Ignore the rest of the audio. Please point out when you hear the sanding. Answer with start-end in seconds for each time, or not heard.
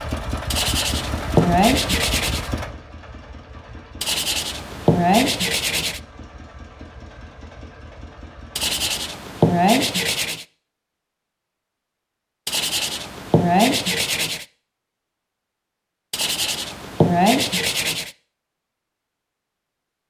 0.5-2.5, 4.0-6.0, 8.6-10.4, 12.4-14.4, 16.1-18.1.